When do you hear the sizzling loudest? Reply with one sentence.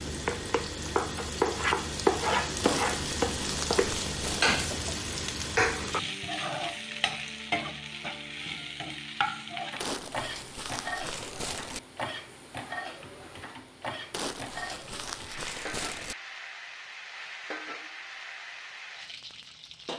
The loudest moment of the sizzling is at 2 seconds.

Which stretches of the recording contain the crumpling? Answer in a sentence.
The crumpling can be heard from 2.6 to 4.5 s, from 9.8 to 11.8 s and from 14.1 to 16.1 s.